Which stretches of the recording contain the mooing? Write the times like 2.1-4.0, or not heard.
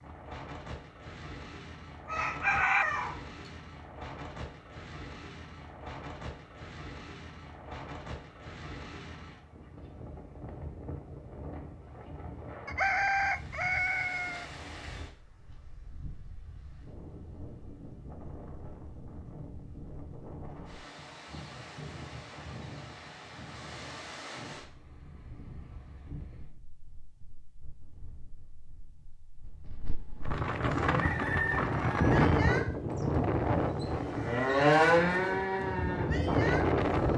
30.9-37.1.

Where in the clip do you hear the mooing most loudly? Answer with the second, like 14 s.
35 s.